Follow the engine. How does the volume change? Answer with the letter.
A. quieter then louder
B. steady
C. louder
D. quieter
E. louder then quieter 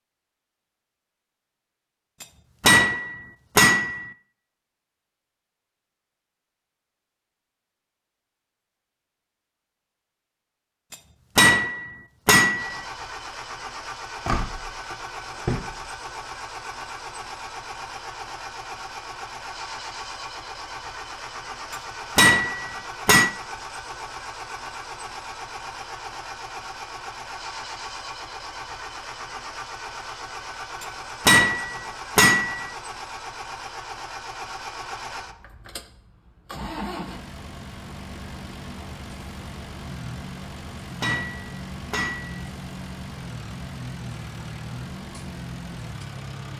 B.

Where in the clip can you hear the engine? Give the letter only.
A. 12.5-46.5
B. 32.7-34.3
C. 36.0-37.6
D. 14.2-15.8
A.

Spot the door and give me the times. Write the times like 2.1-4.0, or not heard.
14.2-15.8.